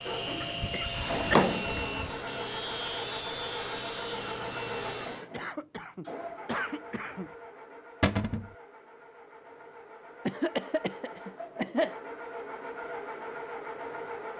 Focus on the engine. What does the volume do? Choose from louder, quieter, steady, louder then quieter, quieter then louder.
quieter then louder.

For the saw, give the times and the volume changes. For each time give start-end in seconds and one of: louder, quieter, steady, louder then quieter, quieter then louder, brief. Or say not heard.
0.0-5.3 steady.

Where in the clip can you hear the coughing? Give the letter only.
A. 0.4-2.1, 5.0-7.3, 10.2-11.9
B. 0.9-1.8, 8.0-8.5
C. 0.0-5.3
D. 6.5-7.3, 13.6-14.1
A.